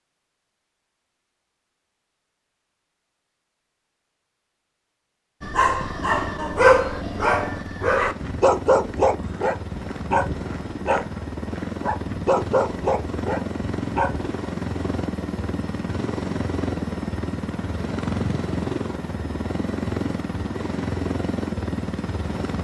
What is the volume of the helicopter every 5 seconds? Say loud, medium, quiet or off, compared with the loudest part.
off, medium, loud, loud, loud.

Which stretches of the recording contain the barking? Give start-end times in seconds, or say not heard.
5.4-14.3.